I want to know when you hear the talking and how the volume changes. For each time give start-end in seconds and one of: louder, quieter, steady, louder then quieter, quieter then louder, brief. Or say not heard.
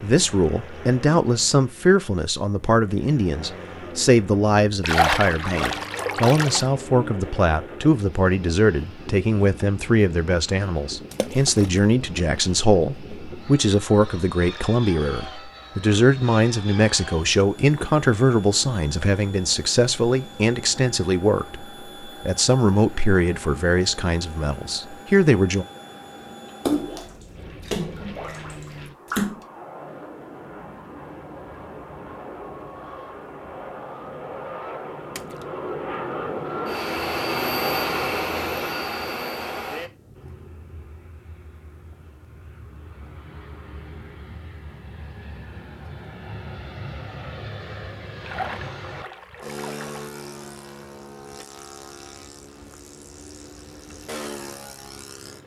0.0-25.6 steady.